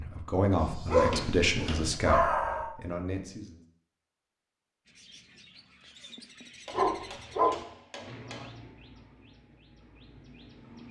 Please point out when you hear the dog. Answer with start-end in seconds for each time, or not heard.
0.8-2.8, 6.7-7.6.